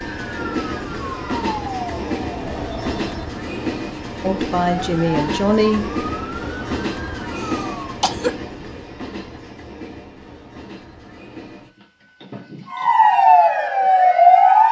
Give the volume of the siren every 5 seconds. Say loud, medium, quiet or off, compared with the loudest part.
quiet, quiet, loud.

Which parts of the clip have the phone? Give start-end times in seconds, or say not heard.
2.4-3.4.